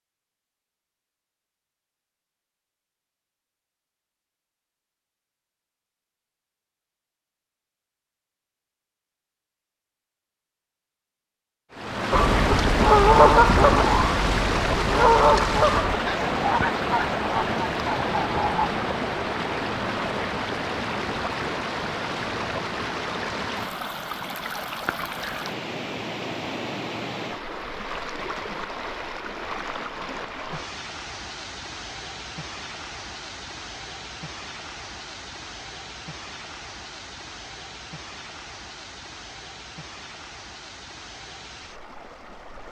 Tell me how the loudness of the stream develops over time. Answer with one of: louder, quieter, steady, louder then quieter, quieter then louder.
quieter.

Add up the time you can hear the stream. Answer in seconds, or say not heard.
31 s.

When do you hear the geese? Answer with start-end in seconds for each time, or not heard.
12.1-18.7.